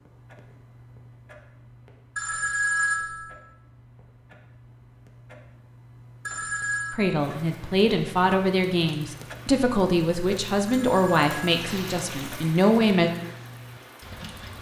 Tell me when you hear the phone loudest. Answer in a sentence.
The loudest moment of the phone is at 3 seconds.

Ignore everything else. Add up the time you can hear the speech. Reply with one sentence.
The speech can be heard for 6 seconds in total.